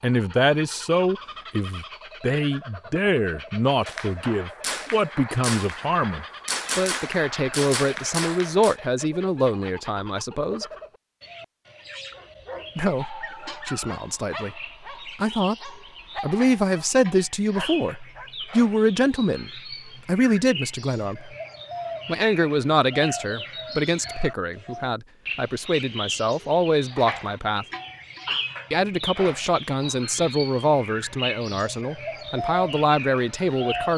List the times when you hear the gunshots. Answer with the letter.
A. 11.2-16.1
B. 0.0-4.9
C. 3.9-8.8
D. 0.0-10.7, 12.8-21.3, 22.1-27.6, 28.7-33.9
C.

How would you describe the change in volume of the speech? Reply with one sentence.
The loudness of the speech stays about the same.